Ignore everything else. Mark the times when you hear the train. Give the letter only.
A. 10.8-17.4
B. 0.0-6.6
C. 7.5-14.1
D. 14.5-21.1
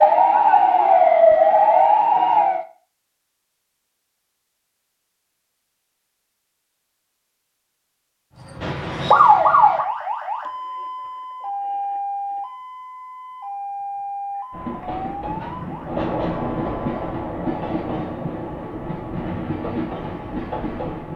D.